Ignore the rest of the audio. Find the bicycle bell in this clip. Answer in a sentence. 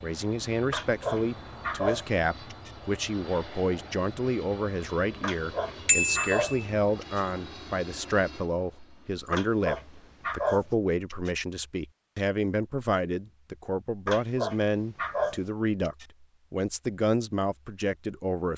You can hear the bicycle bell from 5.8 to 6.7 s.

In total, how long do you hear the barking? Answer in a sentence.
The barking can be heard for 8 seconds in total.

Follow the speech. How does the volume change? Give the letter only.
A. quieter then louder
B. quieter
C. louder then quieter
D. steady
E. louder
D.